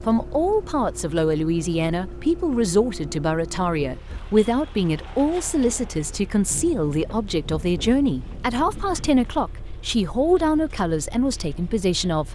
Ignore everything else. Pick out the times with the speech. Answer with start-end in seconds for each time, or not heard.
0.1-12.3.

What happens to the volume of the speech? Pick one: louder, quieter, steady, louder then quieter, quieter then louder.
steady.